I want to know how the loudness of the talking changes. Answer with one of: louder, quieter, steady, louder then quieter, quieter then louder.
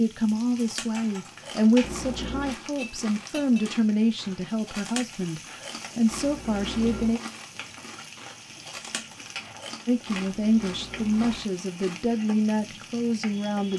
steady.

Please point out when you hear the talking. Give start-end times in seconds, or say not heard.
0.0-7.2, 9.8-13.7.